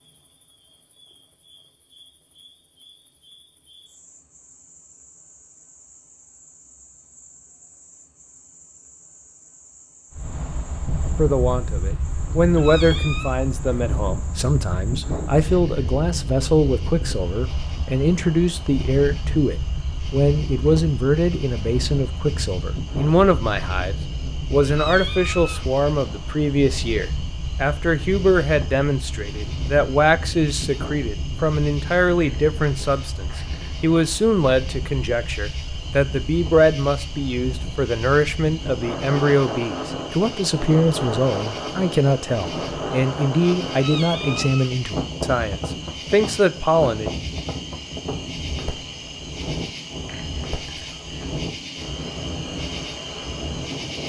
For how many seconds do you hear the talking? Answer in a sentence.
The talking can be heard for 36 seconds in total.